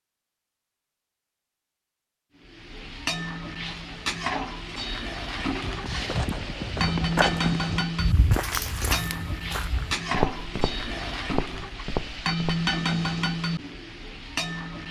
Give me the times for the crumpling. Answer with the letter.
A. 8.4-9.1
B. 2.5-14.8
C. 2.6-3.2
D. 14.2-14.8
A.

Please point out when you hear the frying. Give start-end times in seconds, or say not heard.
2.5-14.8.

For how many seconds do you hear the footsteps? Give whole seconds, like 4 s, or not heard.
7 s.